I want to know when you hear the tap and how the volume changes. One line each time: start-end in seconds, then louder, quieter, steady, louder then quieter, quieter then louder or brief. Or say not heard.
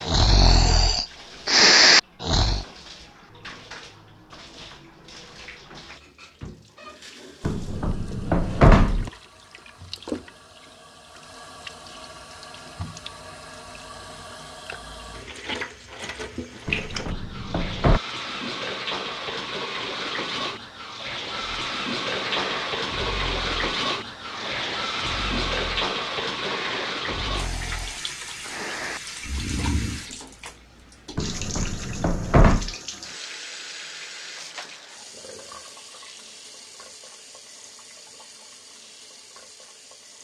0.0-40.1 louder then quieter.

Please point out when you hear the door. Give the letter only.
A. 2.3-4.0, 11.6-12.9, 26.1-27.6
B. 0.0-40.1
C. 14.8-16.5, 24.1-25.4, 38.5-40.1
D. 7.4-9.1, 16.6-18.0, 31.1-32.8
D.